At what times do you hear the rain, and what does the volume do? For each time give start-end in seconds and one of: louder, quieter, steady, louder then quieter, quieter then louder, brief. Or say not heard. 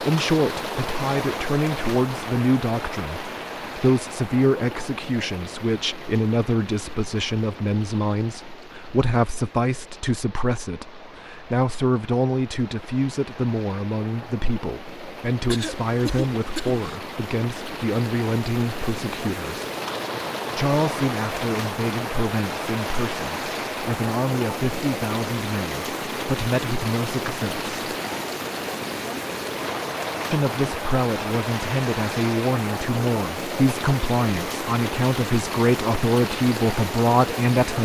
0.0-37.7 quieter then louder.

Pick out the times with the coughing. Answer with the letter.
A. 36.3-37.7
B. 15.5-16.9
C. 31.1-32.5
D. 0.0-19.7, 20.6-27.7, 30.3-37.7
B.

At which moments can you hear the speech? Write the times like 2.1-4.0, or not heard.
0.0-19.7, 20.6-27.7, 30.3-37.7.